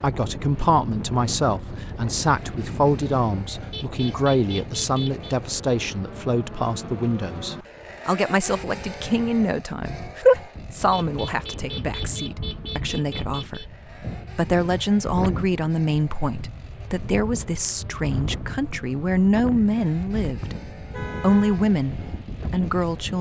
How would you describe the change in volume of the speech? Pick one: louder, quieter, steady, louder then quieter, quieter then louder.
steady.